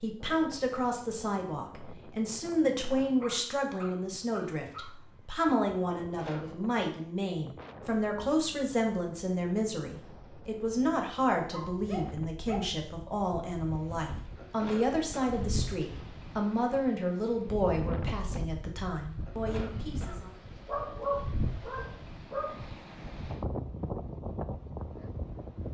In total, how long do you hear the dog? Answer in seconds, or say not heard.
5 s.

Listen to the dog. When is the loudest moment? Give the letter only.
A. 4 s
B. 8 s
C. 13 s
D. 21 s
D.